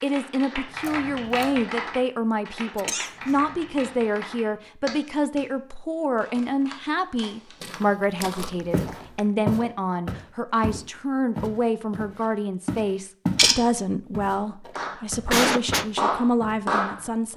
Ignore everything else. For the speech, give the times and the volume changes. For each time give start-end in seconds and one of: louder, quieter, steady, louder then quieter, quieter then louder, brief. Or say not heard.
0.0-17.3 steady.